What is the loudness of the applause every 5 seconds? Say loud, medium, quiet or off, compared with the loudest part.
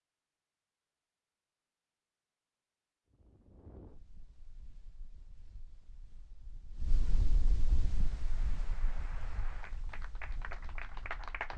off, medium, loud.